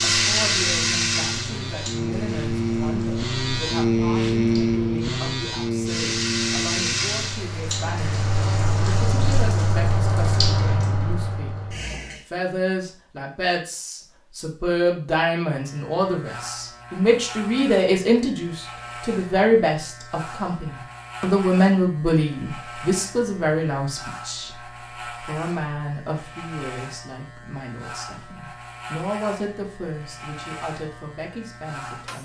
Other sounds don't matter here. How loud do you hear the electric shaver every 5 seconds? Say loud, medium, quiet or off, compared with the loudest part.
loud, loud, off, quiet, quiet, quiet, quiet.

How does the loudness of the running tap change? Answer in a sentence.
The loudness of the running tap goes down, then up.